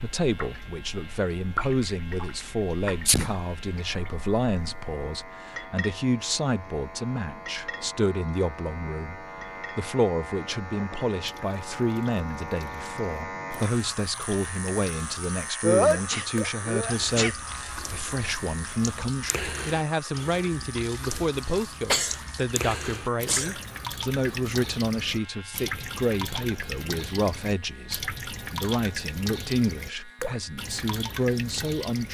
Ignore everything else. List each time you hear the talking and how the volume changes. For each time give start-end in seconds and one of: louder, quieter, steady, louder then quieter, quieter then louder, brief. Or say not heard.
0.0-32.0 steady.